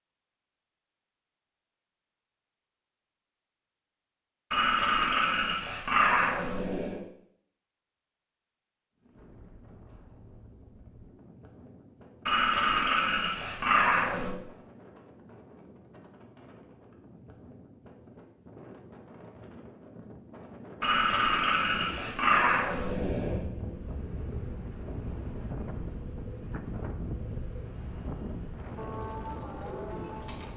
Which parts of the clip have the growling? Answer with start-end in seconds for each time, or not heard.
4.5-7.0, 12.2-14.3, 20.8-23.4.